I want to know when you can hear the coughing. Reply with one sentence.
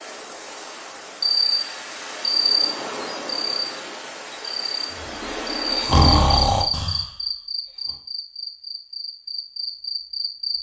The coughing can't be heard in this clip.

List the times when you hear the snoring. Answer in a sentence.
The snoring can be heard from 5.0 to 8.0 s.